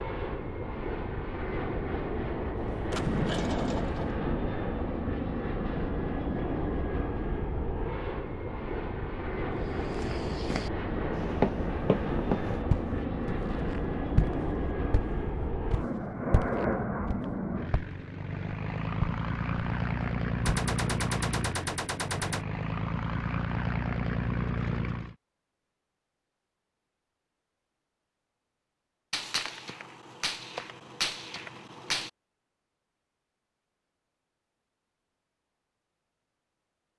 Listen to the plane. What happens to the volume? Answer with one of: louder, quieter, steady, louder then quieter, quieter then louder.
steady.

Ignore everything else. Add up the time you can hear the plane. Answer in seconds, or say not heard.
25 s.